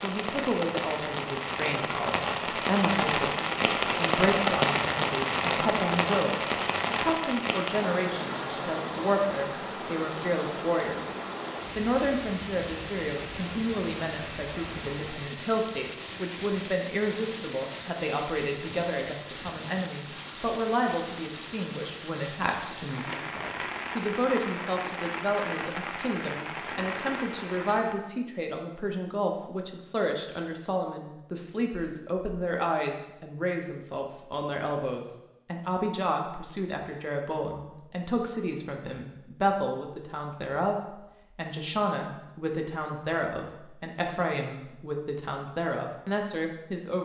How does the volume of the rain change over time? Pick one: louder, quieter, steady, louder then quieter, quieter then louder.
quieter.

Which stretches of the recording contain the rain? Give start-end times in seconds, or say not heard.
0.0-28.0.